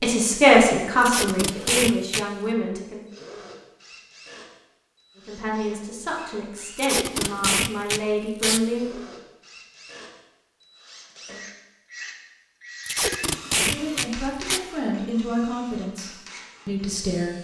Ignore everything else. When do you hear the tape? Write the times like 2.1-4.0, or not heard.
1.0-2.2, 6.8-8.6, 12.8-14.6.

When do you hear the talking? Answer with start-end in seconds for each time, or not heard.
0.0-3.0, 5.2-9.0, 13.6-17.3.